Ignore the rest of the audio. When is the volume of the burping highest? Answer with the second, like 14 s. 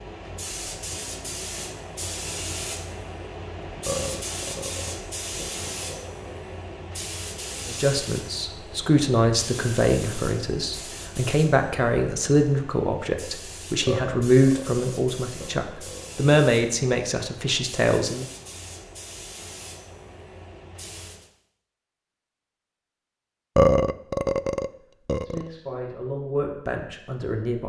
24 s.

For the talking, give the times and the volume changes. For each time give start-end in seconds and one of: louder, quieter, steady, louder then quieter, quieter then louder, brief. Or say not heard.
7.7-18.2 steady
25.2-27.6 brief.